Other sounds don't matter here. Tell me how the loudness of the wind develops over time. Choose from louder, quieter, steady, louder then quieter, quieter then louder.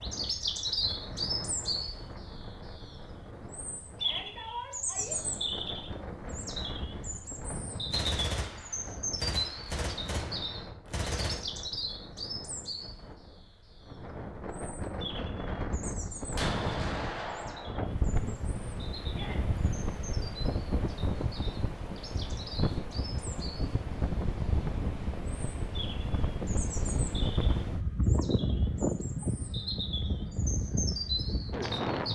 louder.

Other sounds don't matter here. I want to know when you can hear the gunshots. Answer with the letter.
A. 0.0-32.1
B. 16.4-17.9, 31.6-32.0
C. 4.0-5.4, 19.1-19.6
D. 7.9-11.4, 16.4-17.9
D.